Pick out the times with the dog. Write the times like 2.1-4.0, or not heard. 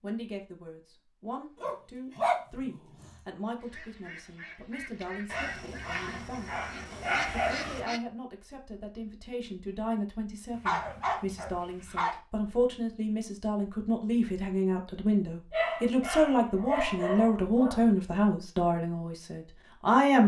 1.6-3.1, 5.2-7.8, 10.5-12.2, 15.5-17.9.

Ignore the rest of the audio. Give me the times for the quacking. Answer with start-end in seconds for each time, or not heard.
3.6-8.0.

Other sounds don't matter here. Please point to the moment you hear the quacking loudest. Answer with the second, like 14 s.
7 s.